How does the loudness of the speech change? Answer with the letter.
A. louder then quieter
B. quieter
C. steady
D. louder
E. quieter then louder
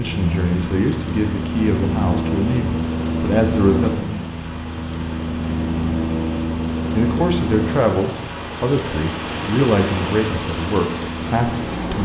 C.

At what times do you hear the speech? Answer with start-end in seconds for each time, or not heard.
0.0-4.2, 6.9-11.9.